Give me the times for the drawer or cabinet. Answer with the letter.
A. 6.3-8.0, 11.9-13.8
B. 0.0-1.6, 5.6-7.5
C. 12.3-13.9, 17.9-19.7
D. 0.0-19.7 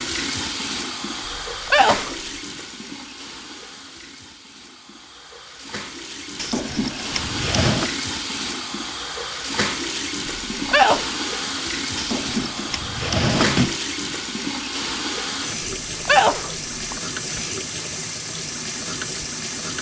A.